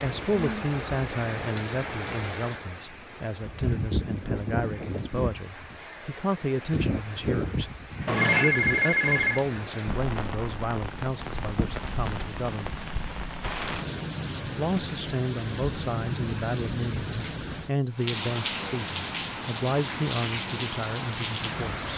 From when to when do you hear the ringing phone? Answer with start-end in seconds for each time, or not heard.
8.1-9.4.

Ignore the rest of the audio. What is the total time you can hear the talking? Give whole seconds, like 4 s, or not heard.
20 s.